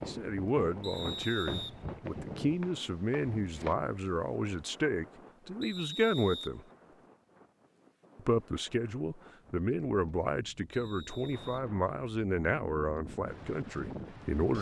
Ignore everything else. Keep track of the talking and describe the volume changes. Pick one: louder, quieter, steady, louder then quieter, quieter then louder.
steady.